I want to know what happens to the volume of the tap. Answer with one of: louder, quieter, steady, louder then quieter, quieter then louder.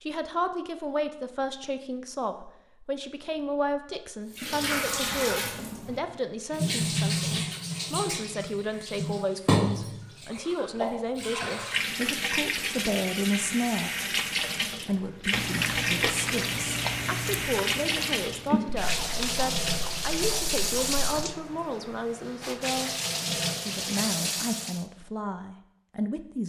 steady.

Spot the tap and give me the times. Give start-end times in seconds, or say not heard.
4.3-24.9.